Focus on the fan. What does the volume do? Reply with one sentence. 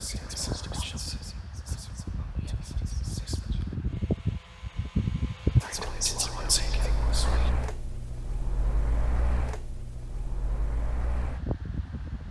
The volume of the fan goes up, then down.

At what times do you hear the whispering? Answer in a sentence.
You can hear the whispering from 0.0 to 3.8 s and from 5.6 to 7.5 s.